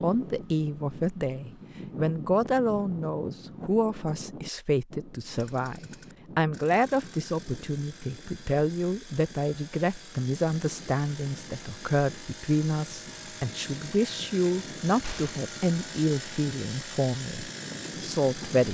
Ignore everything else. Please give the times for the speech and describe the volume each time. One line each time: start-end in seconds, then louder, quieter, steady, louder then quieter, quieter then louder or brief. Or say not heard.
0.0-18.6 steady.